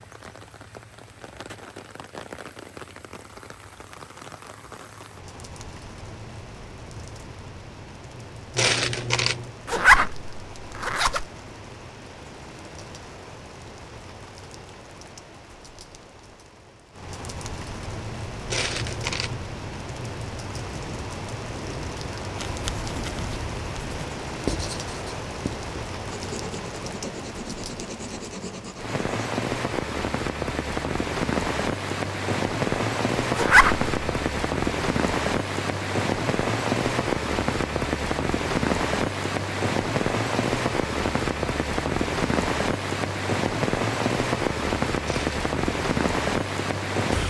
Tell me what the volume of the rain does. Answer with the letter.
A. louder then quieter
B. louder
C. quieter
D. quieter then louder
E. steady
B.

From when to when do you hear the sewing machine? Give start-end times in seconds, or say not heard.
not heard.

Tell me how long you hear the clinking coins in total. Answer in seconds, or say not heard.
2 s.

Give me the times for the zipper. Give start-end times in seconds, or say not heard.
9.7-11.2, 33.4-33.9.